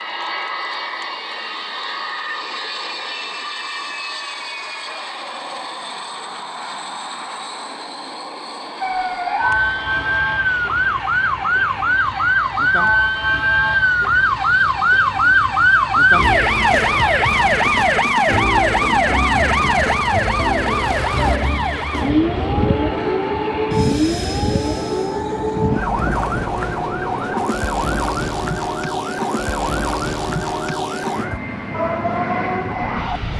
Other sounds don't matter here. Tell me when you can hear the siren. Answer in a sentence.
The siren can be heard from 8.8 to 33.3 s.